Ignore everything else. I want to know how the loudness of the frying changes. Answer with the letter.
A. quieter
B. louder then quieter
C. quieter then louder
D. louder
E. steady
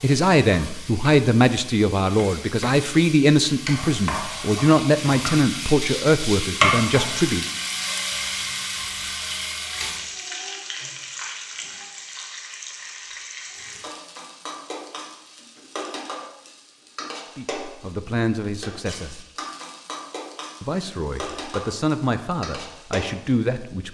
B.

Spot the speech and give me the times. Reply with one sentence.
The speech can be heard from 0.0 to 7.5 s, from 17.4 to 19.2 s and from 20.6 to 23.8 s.